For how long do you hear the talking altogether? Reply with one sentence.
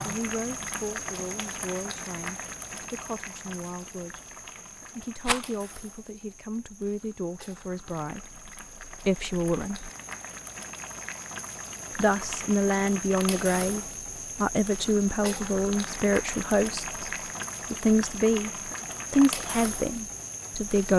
You can hear the talking for 17 seconds altogether.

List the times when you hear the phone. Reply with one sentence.
You can't hear the phone here.